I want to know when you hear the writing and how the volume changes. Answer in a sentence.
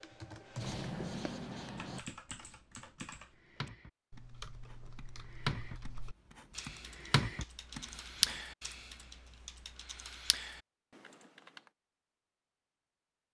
You can hear the writing from 0.6 to 8.3 s, getting quieter then louder.